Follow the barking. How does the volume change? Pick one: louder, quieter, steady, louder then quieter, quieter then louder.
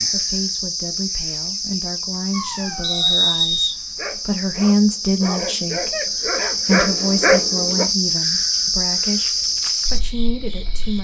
louder.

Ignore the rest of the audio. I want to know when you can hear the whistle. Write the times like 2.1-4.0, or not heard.
2.8-3.8.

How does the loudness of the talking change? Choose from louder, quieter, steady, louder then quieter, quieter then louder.
louder then quieter.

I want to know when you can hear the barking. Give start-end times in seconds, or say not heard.
2.3-7.8.